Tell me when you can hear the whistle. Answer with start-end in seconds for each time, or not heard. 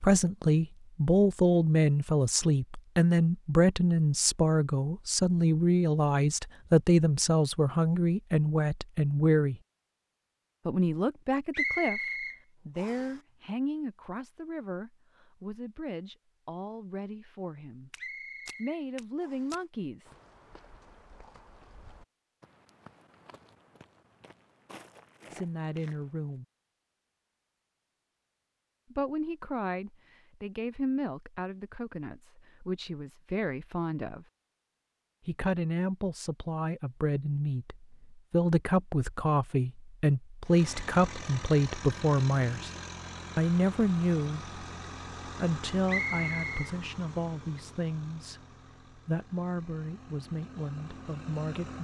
11.5-13.1, 17.9-19.6, 45.9-46.7.